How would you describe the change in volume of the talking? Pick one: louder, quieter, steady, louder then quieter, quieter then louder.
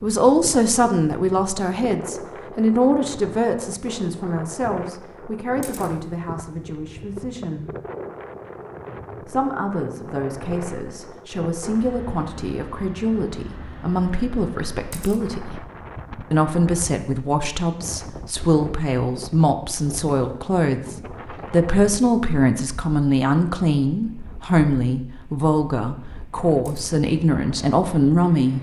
quieter then louder.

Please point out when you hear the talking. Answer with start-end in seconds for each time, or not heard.
0.0-7.7, 9.2-15.6, 16.3-28.5.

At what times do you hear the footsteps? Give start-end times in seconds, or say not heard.
not heard.